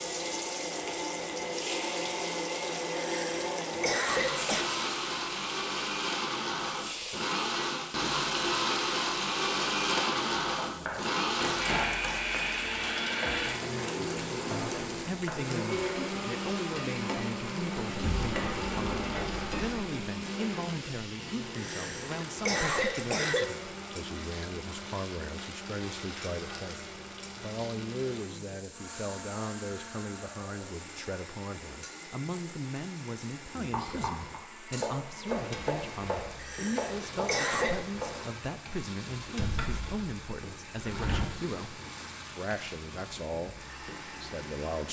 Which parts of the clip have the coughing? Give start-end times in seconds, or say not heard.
2.9-4.7, 21.6-23.4, 36.4-37.9.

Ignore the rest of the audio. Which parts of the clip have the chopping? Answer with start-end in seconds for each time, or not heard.
33.5-38.4.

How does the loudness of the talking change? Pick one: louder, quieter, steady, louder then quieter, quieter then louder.
steady.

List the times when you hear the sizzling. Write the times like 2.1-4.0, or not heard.
0.0-44.8.